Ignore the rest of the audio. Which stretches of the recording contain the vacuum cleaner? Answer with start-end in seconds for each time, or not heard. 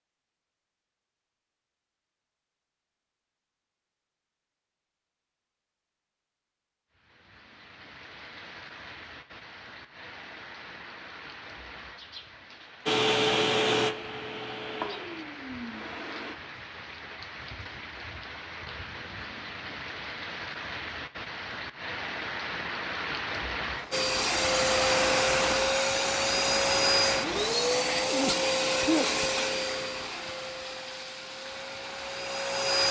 12.8-16.4, 23.9-32.8.